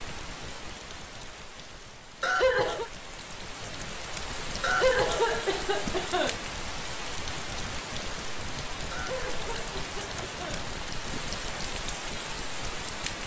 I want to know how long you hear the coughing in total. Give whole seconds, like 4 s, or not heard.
4 s.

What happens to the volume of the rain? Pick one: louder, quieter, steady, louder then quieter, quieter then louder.
louder.